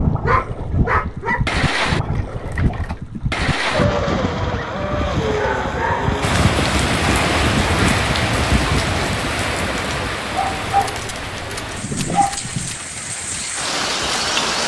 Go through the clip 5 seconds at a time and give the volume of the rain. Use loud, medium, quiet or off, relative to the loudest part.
off, loud, loud.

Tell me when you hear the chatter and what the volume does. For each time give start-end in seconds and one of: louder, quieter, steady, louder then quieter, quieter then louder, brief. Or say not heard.
not heard.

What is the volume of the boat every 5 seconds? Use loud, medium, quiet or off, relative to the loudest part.
loud, loud, quiet.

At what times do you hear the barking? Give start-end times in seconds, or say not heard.
0.2-3.0, 5.2-6.2, 10.3-12.8.